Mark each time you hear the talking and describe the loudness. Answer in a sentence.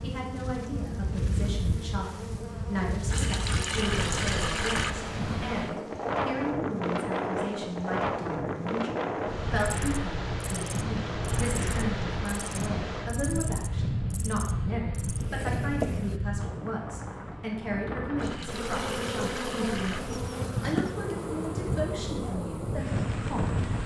The talking can be heard from 0.0 to 23.6 s, at a steady volume.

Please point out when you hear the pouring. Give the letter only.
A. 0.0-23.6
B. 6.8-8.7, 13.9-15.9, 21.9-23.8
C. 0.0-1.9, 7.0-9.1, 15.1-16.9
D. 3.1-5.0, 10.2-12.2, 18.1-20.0
D.